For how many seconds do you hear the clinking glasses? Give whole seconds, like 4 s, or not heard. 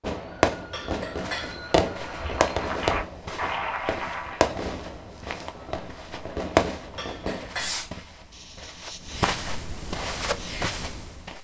2 s.